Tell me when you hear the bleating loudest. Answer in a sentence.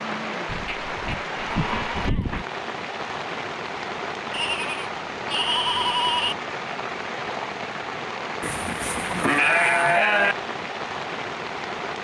The loudest moment of the bleating is at 10 seconds.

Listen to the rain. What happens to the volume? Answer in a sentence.
The volume of the rain stays about the same.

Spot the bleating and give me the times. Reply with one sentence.
The bleating can be heard from 0.5 to 2.5 s, from 4.3 to 6.3 s and from 8.4 to 10.3 s.